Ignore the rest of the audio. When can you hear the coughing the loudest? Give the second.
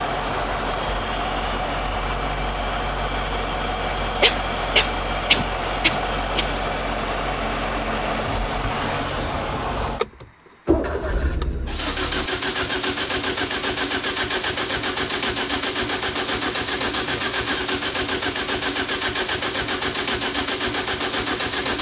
5 s.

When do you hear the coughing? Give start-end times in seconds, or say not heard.
4.2-6.5.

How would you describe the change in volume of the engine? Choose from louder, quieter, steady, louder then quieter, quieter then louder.
steady.